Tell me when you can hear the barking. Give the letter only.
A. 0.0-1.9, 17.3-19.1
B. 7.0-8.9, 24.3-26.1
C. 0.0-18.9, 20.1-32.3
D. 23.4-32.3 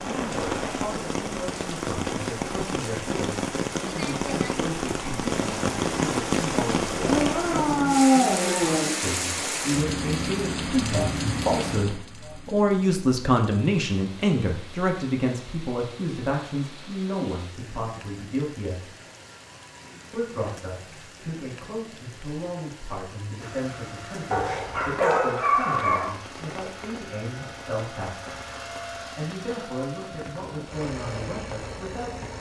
B.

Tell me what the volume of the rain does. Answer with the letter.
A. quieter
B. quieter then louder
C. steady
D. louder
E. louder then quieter
A.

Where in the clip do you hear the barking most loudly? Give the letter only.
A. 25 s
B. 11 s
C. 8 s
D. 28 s
C.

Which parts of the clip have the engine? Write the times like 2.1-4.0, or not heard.
23.4-32.3.